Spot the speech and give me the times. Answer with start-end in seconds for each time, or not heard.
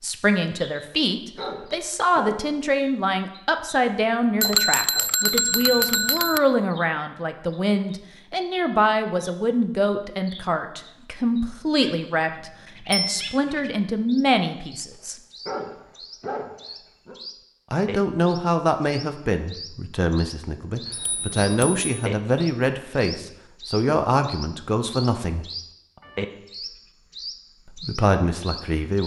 0.0-15.2, 17.7-25.4, 27.7-29.0.